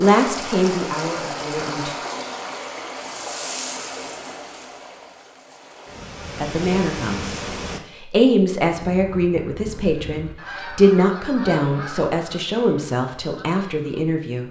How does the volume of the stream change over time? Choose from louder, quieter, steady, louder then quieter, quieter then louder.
quieter then louder.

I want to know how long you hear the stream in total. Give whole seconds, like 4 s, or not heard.
8 s.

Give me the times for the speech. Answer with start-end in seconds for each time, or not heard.
0.0-1.9, 6.3-14.4.